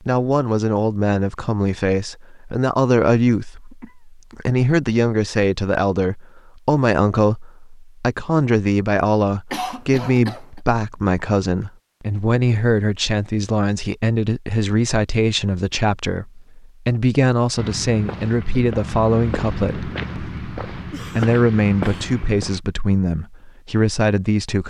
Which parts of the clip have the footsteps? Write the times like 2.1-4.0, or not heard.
17.6-22.6.